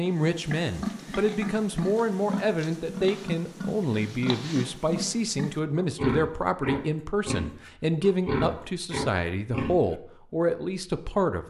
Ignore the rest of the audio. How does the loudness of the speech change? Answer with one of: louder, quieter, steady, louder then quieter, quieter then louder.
steady.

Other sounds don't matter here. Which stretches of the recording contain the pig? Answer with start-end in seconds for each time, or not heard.
0.0-9.8.